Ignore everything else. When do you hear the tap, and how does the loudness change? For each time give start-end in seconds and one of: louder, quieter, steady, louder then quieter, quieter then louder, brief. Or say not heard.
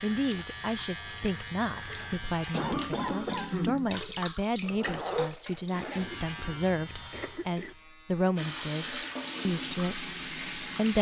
0.0-6.3 louder
8.3-10.9 brief.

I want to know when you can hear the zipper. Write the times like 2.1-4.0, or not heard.
4.6-6.1.